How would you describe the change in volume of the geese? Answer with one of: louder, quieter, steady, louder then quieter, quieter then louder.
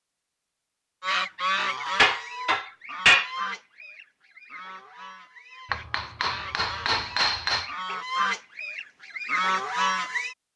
quieter then louder.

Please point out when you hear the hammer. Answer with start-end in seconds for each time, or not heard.
1.9-3.3, 5.7-7.7.